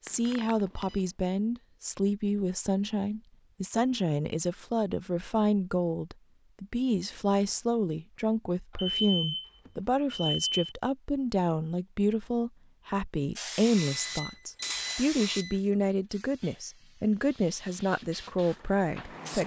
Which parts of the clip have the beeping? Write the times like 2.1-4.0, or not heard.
0.1-0.9, 8.8-10.8, 13.8-15.6.